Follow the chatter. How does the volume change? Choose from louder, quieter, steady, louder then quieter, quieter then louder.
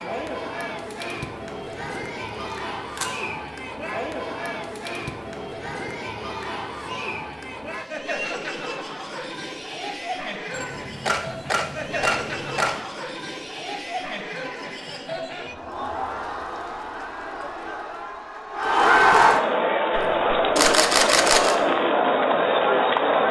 louder.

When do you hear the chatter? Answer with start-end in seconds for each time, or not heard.
0.0-23.2.